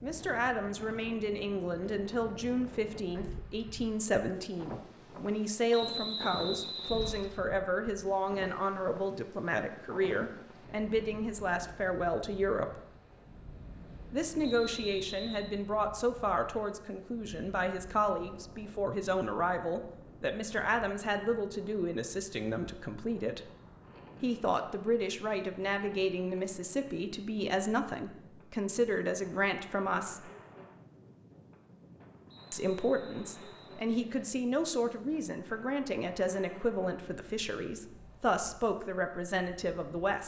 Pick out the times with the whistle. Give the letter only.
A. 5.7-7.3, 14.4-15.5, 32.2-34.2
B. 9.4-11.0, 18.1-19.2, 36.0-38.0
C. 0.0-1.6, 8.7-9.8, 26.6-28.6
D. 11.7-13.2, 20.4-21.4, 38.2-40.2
A.